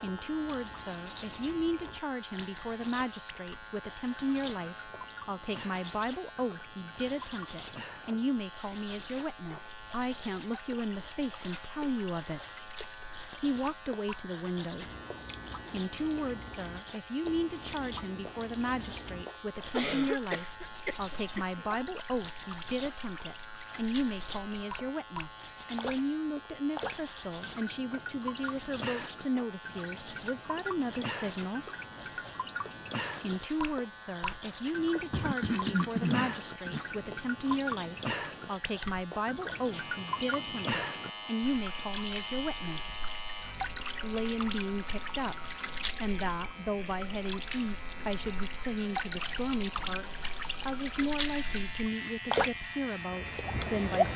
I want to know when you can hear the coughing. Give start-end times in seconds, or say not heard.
19.7-21.6, 35.1-36.9.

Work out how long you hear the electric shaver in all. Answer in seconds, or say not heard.
54 s.